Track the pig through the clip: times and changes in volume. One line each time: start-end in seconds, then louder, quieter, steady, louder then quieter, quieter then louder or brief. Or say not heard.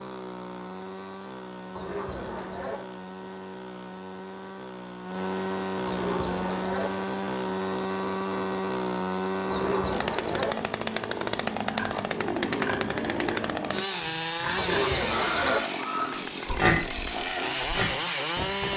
11.7-18.7 louder then quieter.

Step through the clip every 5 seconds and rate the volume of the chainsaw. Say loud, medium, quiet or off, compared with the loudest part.
medium, loud, loud, loud.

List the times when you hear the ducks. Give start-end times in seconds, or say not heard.
1.8-2.8, 5.8-6.9, 9.5-10.6, 14.6-15.6.